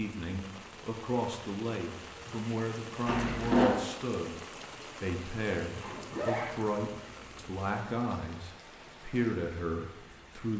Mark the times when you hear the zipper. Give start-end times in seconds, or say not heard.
3.0-3.8, 5.8-7.5.